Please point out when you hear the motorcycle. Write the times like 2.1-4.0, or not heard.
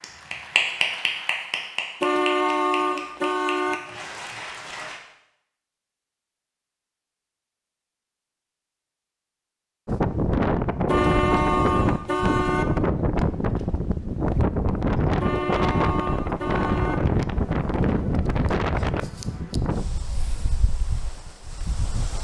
not heard.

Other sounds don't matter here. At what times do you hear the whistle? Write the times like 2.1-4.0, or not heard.
not heard.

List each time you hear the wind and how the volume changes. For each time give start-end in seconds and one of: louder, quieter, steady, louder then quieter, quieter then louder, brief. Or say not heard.
9.8-22.2 quieter.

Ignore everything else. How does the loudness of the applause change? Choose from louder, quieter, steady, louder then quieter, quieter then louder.
quieter.